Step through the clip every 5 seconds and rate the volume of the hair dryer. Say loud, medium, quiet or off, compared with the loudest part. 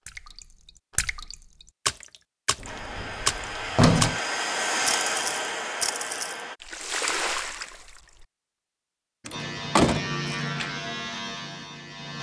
loud, loud, off.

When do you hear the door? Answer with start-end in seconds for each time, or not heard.
2.6-4.2, 9.2-10.2.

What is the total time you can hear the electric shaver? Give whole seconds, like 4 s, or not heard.
3 s.